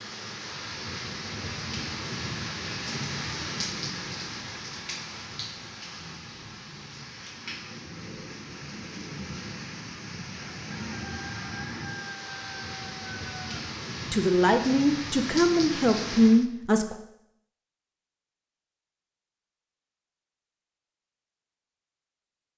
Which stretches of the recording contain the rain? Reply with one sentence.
The rain can be heard from 0.0 to 16.4 s.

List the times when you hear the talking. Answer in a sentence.
The talking can be heard from 14.1 to 16.9 s.